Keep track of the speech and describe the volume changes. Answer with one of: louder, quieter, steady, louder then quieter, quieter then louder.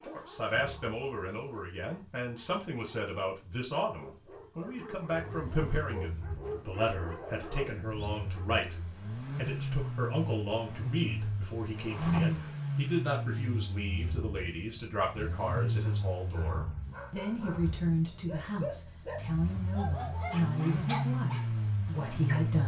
steady.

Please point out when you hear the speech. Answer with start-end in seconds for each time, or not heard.
0.0-22.6.